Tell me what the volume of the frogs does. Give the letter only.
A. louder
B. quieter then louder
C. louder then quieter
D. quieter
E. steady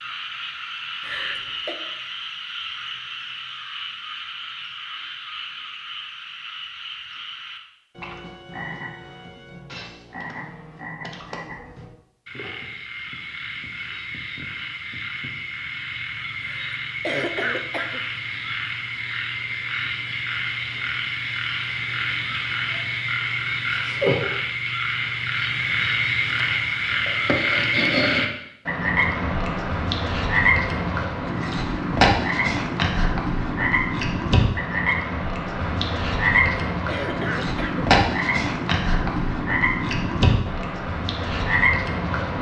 A.